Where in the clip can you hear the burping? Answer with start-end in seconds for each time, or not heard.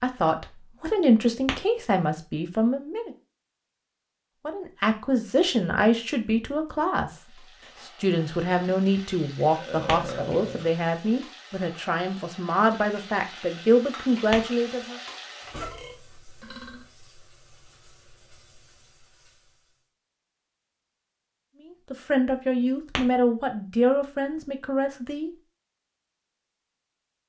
9.5-10.8, 15.7-16.9.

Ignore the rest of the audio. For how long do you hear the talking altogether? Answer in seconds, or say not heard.
17 s.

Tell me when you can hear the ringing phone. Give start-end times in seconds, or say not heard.
not heard.